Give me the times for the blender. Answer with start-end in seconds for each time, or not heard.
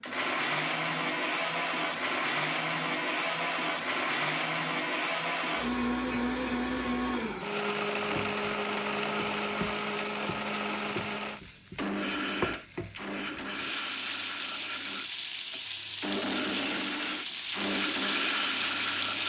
0.0-19.2.